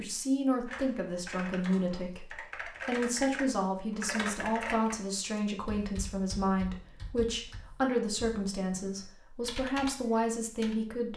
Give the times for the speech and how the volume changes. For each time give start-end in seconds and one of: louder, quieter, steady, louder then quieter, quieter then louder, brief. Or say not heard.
0.0-11.1 steady.